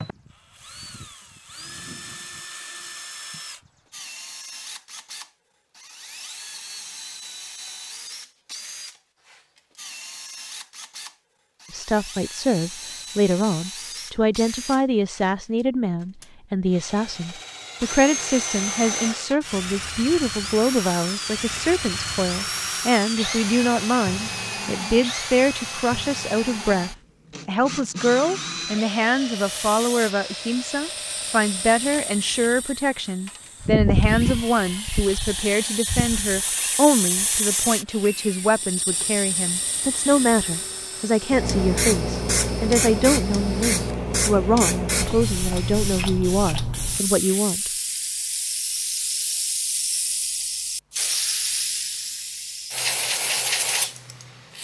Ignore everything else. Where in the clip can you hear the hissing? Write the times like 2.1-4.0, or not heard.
29.4-54.5.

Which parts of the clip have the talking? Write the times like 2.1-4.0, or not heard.
11.7-47.7.